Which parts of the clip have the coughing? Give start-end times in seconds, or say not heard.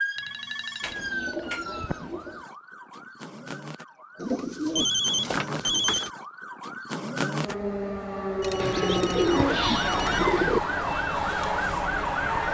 not heard.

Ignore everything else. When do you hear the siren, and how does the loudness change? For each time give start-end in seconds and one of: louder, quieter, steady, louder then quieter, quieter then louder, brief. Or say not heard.
0.0-12.4 quieter then louder.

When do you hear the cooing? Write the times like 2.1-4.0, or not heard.
0.8-2.4, 4.2-6.1, 8.6-10.6.